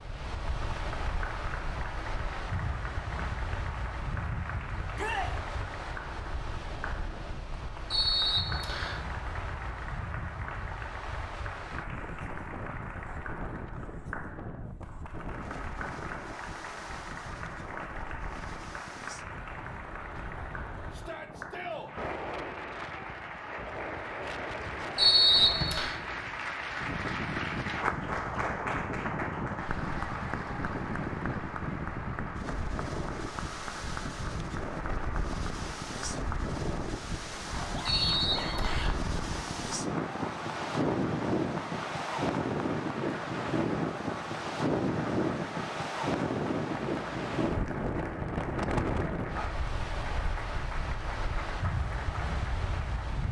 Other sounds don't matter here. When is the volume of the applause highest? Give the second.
28 s.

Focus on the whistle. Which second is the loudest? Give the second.
25 s.